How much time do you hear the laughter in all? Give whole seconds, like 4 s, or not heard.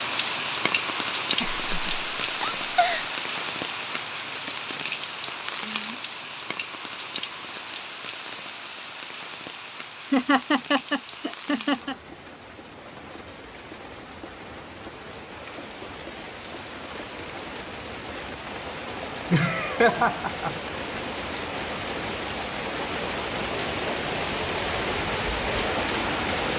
5 s.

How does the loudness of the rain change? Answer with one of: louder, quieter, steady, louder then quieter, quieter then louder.
quieter then louder.